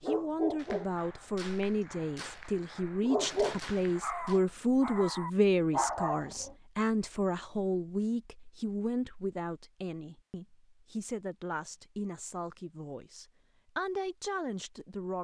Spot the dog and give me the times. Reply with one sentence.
You can hear the dog from 0.0 to 6.5 s.